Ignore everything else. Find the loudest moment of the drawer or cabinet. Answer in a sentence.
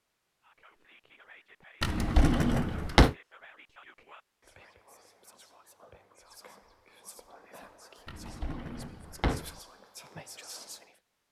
The volume of the drawer or cabinet peaks at 3 seconds.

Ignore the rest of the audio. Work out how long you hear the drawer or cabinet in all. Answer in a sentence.
You can hear the drawer or cabinet for 3 seconds altogether.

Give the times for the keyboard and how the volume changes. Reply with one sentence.
You can't hear the keyboard here.